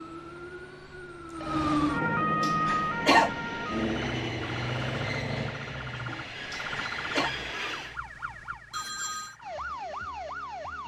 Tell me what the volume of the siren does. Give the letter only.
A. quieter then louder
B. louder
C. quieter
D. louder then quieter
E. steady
C.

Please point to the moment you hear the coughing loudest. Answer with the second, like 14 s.
3 s.